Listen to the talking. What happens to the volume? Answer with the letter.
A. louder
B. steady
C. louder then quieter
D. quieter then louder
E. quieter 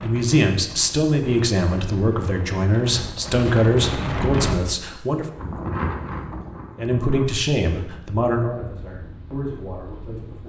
E.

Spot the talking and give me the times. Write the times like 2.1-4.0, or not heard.
0.0-5.2, 6.8-10.4.